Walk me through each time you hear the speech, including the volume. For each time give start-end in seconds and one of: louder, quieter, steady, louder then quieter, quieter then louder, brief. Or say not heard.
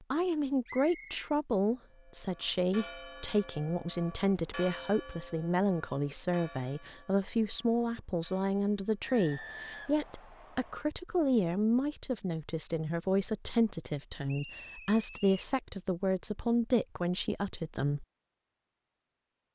0.1-18.1 steady.